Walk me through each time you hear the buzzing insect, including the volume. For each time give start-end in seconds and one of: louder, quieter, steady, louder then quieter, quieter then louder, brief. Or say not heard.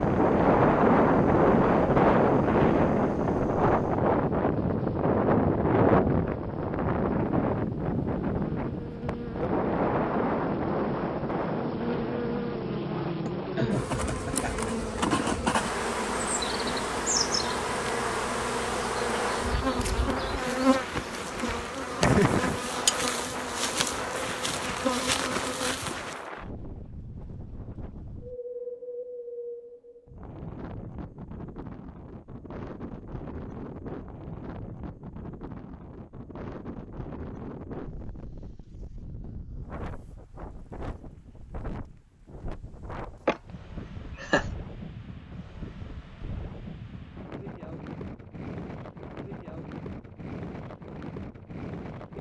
0.0-26.2 louder.